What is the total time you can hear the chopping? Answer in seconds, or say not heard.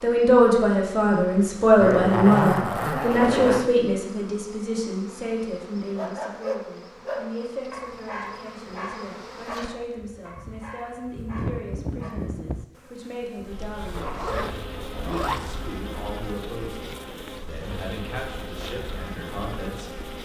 not heard.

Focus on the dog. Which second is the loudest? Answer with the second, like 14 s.
6 s.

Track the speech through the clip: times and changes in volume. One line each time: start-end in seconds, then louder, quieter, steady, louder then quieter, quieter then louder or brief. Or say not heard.
0.0-20.0 quieter.